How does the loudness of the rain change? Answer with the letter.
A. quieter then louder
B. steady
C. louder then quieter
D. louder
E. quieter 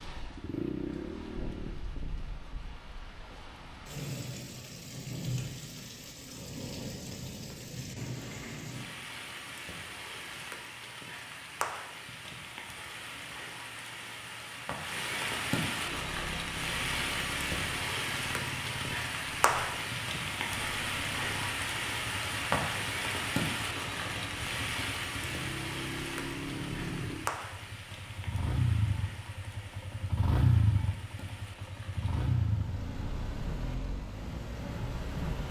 C.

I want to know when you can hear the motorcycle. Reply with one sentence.
The motorcycle can be heard from 0.0 to 1.8 s and from 15.8 to 35.4 s.